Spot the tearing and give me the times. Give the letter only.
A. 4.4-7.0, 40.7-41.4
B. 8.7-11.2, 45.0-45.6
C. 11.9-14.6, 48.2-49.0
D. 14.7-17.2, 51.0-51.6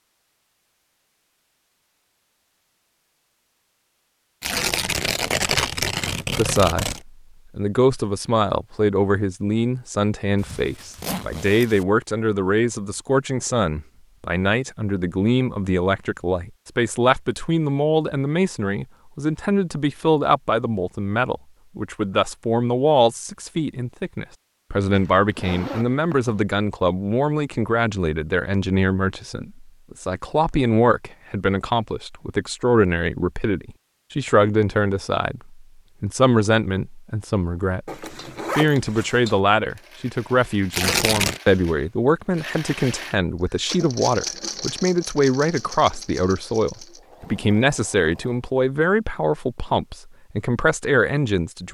A.